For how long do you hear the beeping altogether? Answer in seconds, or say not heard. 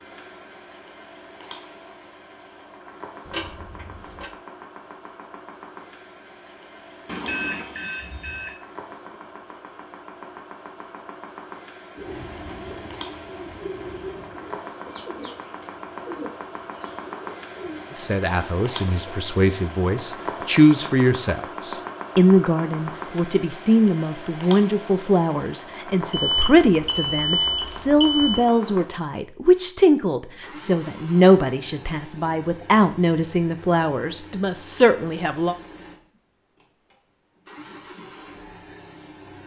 4 s.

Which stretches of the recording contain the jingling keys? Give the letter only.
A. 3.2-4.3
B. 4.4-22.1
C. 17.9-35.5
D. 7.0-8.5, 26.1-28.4
A.